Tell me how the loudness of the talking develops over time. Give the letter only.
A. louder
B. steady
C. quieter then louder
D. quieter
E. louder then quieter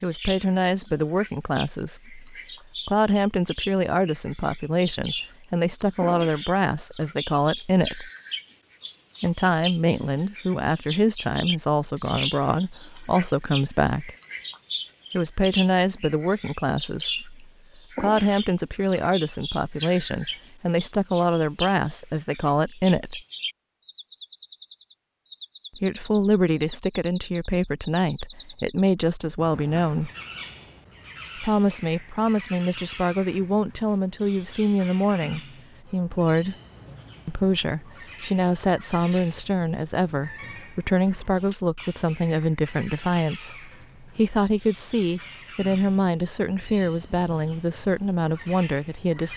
B.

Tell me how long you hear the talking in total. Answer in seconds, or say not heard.
43 s.